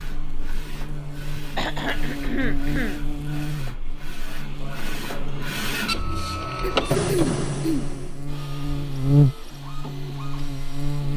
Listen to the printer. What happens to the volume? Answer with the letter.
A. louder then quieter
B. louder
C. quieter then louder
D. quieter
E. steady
A.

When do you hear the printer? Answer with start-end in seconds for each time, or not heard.
0.0-11.1.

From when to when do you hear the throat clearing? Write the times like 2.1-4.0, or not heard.
1.6-3.0, 6.6-7.9.